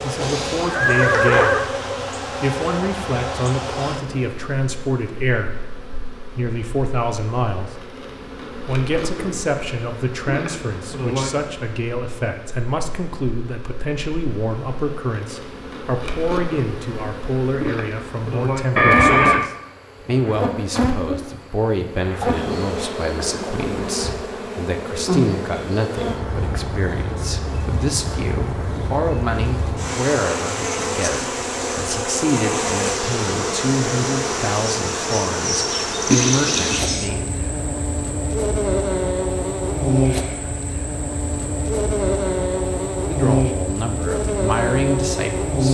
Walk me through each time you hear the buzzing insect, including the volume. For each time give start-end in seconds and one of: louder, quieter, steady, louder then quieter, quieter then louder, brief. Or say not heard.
0.0-45.6 louder.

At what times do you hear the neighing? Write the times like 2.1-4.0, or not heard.
0.2-1.7, 18.8-19.5, 36.1-37.1.